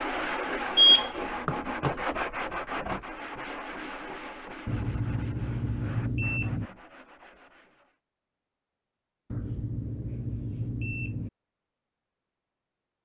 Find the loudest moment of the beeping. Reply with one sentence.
The volume of the beeping peaks at 1 second.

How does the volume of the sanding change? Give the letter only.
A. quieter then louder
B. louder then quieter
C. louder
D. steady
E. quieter
E.